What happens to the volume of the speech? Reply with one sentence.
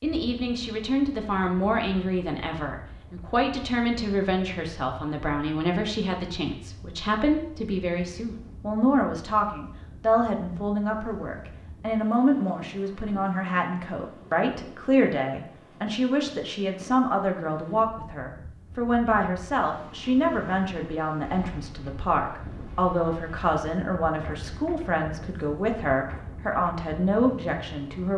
The loudness of the speech stays about the same.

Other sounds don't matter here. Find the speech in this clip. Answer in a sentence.
You can hear the speech from 0.0 to 28.1 s.